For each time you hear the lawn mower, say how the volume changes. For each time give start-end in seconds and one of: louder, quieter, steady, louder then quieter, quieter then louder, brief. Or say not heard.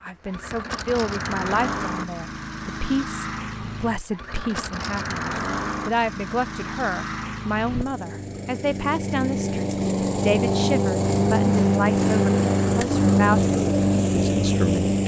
0.1-15.0 louder.